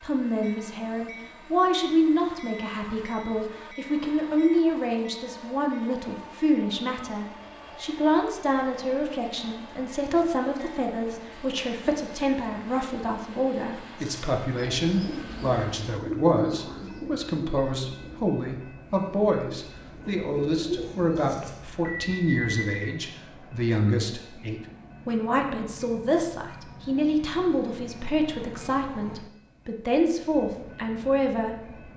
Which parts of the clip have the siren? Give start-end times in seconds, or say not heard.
not heard.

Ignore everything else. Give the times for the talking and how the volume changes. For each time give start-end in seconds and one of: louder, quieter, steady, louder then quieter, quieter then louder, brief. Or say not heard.
0.0-31.9 steady.